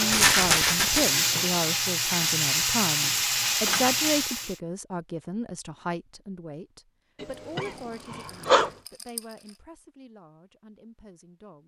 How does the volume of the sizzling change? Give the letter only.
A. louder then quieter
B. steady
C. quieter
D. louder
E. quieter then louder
B.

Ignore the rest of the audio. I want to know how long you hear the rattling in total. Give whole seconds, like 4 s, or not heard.
3 s.